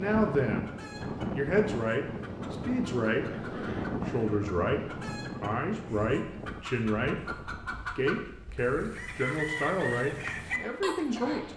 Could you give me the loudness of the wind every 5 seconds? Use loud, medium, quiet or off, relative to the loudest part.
loud, medium, quiet.